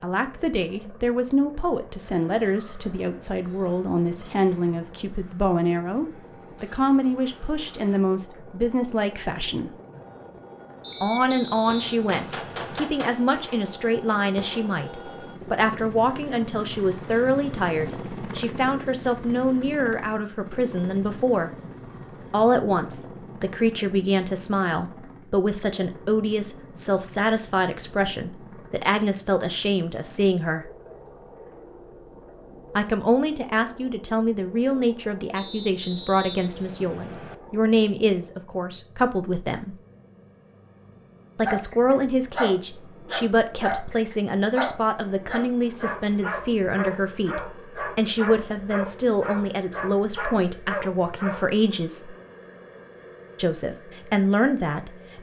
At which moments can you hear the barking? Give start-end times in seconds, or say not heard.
41.5-51.4.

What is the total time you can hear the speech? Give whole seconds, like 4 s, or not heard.
48 s.